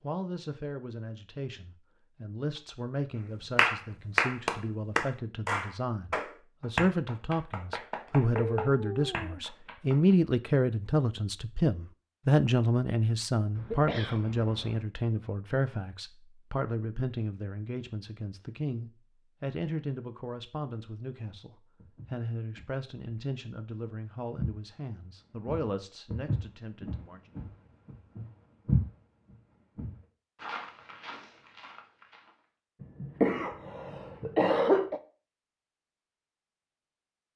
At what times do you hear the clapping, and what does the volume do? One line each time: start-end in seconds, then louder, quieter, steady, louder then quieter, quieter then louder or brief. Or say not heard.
3.5-10.2 quieter.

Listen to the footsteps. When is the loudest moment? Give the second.
29 s.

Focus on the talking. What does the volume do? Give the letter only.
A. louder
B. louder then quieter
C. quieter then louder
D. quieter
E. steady
B.